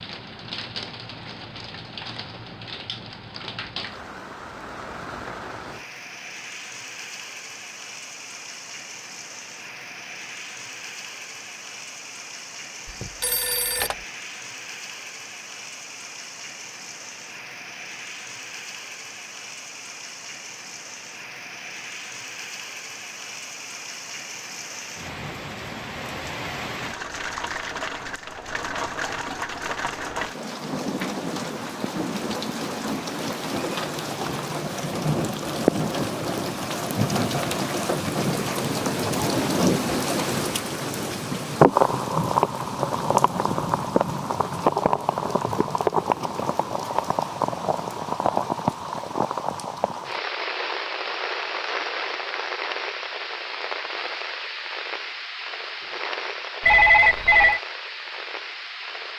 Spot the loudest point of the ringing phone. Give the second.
57 s.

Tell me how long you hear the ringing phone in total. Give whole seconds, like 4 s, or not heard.
2 s.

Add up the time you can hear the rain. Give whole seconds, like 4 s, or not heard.
59 s.